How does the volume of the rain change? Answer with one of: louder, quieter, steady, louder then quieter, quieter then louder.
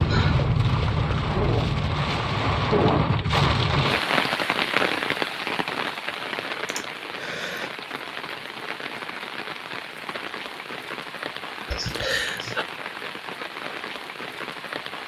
quieter.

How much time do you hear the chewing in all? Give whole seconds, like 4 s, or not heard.
2 s.